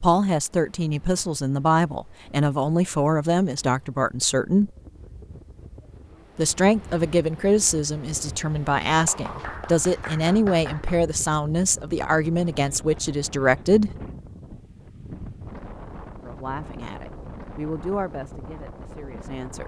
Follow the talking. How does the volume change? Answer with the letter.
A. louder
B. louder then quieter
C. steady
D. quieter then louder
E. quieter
E.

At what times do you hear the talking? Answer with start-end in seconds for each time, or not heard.
0.0-4.7, 6.3-13.9, 16.2-19.6.